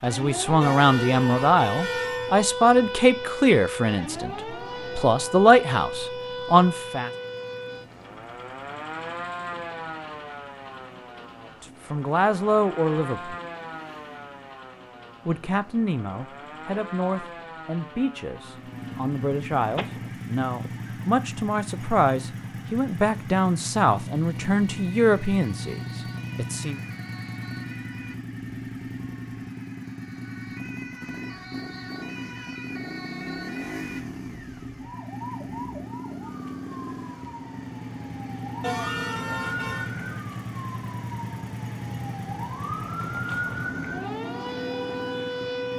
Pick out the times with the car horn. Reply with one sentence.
The car horn can be heard from 0.6 to 2.4 s and from 38.6 to 39.9 s.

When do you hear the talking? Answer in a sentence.
The talking can be heard from 0.0 to 7.1 s, from 11.6 to 13.3 s and from 15.2 to 26.8 s.